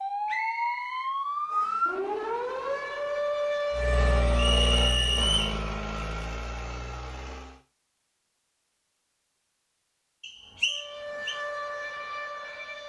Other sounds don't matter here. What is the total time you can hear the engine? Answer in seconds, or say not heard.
4 s.